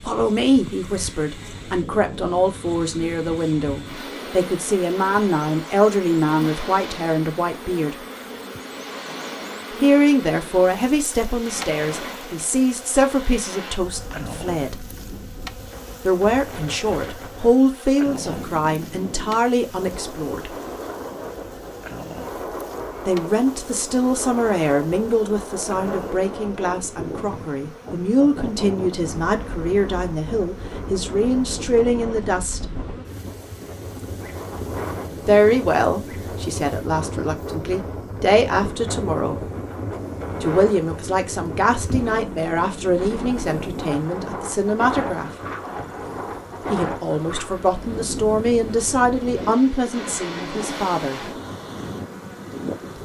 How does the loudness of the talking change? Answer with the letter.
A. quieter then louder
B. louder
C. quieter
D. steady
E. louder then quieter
D.